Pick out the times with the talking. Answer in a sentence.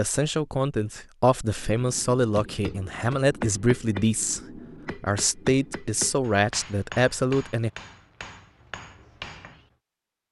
You can hear the talking from 0.0 to 7.7 s.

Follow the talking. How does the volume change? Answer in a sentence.
The loudness of the talking stays about the same.